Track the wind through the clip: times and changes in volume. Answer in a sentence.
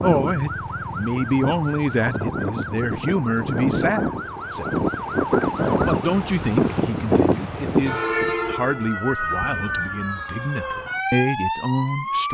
You can hear the wind from 0.0 to 8.6 s, getting louder.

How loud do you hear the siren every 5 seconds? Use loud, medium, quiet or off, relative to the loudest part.
medium, loud, loud.